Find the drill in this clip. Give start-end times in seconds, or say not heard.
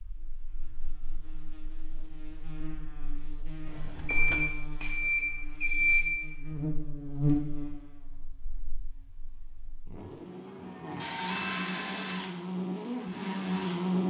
10.9-13.9.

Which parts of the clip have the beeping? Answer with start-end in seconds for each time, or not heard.
4.0-6.0.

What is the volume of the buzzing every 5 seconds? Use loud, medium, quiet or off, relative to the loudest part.
quiet, loud, loud.